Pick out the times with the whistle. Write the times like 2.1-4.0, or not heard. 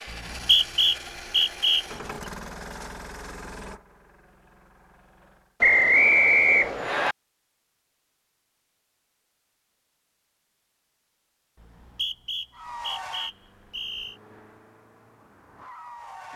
0.1-1.9, 5.6-7.2, 11.6-14.2.